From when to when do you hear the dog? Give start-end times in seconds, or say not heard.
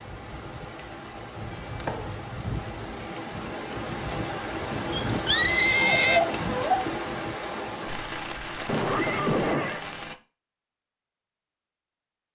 4.9-6.8.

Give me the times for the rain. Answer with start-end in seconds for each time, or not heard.
0.0-10.2.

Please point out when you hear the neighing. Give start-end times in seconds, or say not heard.
1.4-2.2, 4.1-6.2, 8.7-9.8.